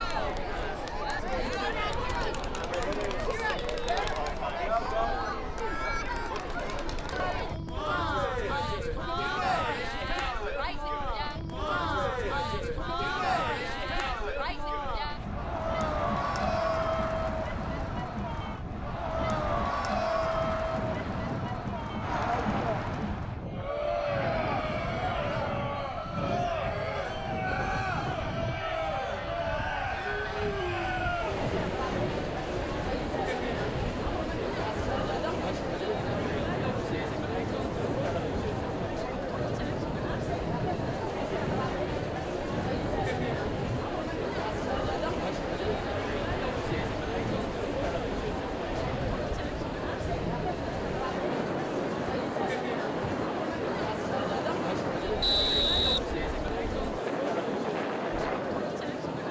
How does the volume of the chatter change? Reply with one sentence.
The loudness of the chatter stays about the same.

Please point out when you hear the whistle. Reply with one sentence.
You can hear the whistle from 55.2 to 56.7 s.